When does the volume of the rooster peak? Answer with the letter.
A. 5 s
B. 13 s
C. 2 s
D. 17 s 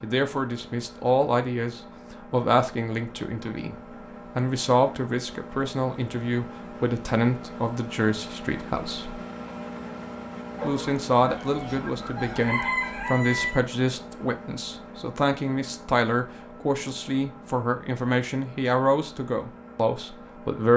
B.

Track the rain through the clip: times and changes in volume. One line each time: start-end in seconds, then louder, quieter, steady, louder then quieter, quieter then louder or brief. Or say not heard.
not heard.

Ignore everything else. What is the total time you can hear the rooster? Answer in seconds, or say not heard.
3 s.